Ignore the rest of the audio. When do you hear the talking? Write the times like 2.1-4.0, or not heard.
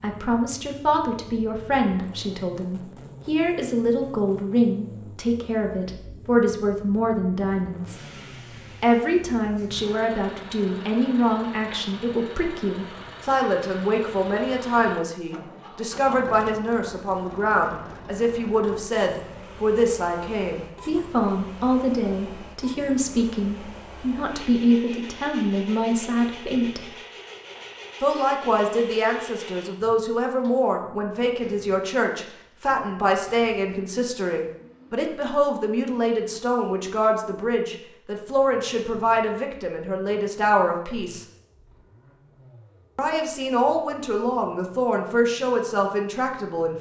0.0-8.0, 8.8-26.9, 28.0-41.2, 43.0-46.7.